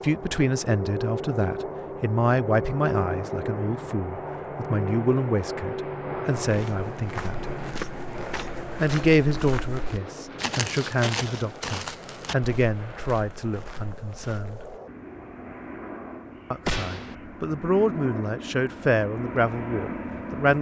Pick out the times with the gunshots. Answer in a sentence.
The gunshots can be heard from 16.6 to 17.1 s.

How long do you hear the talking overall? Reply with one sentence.
You can hear the talking for 17 seconds altogether.